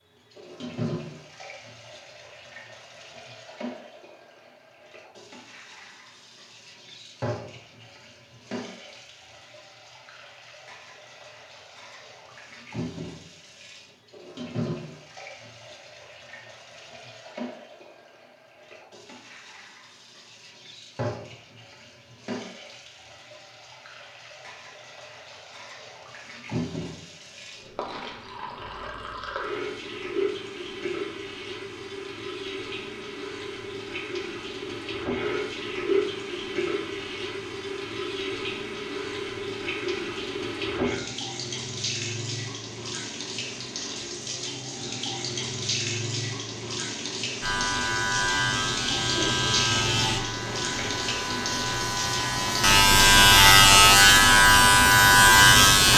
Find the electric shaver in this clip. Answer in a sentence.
The electric shaver can be heard from 47.4 to 55.9 s.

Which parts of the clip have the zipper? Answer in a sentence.
The zipper can't be heard in this clip.